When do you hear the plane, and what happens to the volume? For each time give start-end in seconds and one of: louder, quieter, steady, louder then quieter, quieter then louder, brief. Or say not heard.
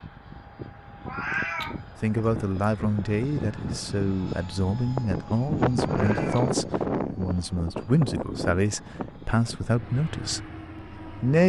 0.0-11.4 louder then quieter.